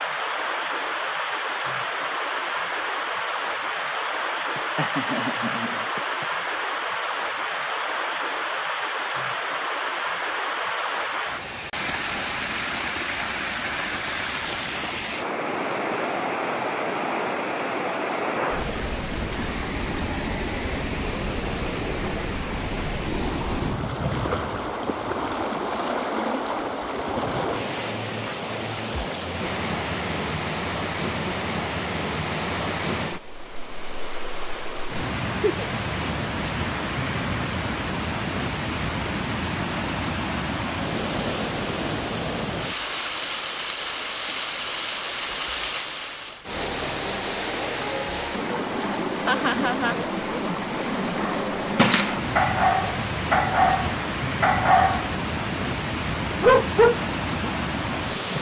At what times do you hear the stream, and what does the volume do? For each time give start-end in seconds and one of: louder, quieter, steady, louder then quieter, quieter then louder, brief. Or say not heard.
0.0-58.3 steady.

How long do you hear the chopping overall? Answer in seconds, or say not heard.
not heard.